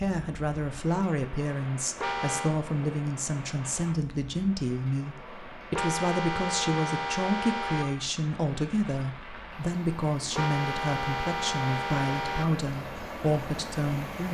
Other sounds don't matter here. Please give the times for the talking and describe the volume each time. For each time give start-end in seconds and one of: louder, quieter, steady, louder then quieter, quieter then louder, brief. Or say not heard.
0.0-14.3 steady.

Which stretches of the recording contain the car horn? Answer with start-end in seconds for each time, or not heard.
1.9-2.5, 5.7-8.1, 10.3-12.7.